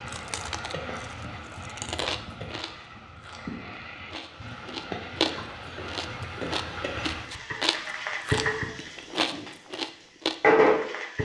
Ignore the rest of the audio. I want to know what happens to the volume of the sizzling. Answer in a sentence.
The volume of the sizzling goes up.